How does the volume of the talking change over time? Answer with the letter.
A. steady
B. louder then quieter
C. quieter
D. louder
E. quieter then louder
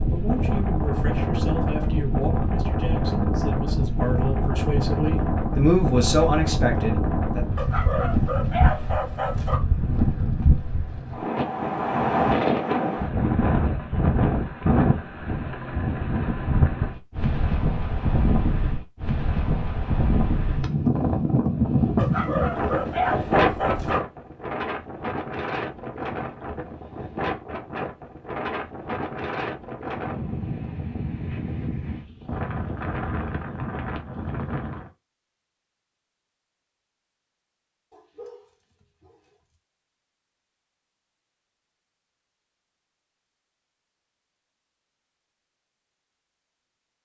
D.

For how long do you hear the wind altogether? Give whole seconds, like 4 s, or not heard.
35 s.